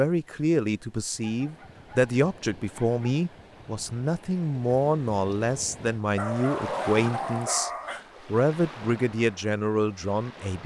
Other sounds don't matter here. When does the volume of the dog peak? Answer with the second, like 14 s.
7 s.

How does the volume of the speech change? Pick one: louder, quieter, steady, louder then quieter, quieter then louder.
steady.